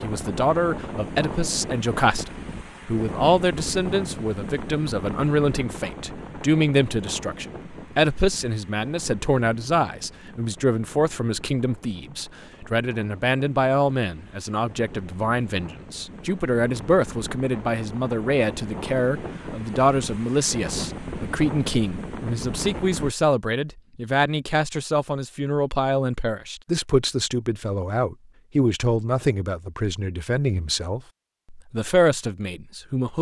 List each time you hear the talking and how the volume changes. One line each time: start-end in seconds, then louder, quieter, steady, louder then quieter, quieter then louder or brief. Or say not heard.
0.0-33.1 steady.